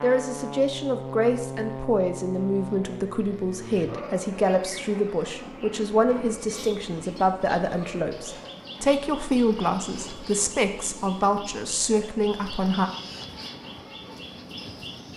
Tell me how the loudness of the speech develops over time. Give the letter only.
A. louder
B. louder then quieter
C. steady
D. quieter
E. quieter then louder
C.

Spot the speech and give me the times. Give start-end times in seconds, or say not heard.
0.0-12.9.